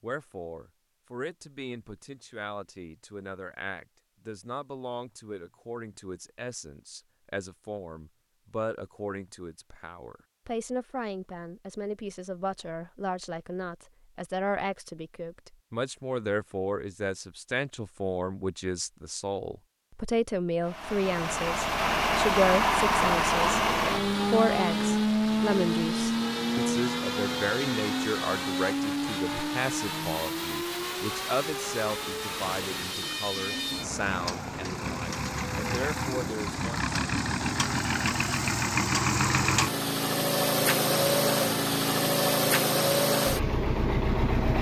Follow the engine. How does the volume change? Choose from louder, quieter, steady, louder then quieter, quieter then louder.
quieter then louder.